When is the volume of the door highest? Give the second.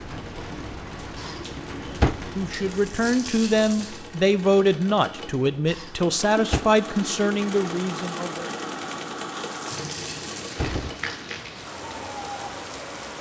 2 s.